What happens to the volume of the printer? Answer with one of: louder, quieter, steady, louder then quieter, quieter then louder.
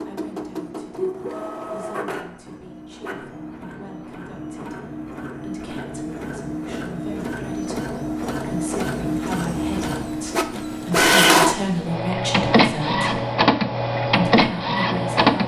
louder.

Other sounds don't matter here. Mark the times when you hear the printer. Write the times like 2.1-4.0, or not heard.
0.0-15.4.